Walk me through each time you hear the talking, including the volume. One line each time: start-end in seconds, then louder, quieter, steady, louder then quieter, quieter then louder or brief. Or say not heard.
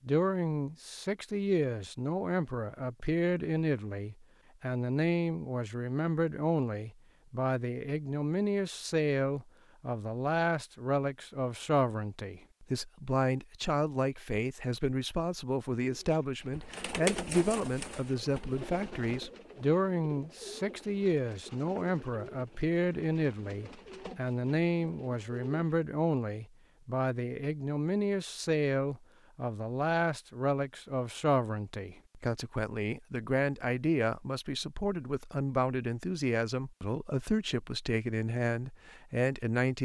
0.1-39.8 steady.